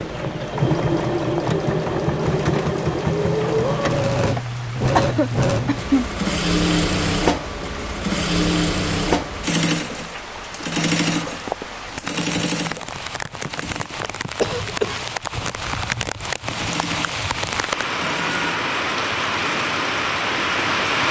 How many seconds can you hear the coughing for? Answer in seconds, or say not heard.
2 s.